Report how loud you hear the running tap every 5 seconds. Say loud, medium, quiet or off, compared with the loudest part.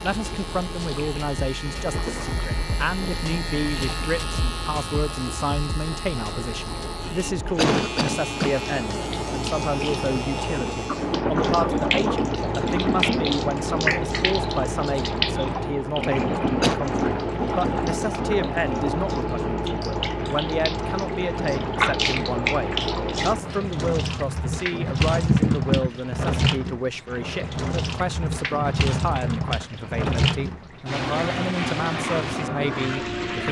quiet, medium, loud, loud, loud, loud, loud.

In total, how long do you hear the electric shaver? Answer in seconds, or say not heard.
11 s.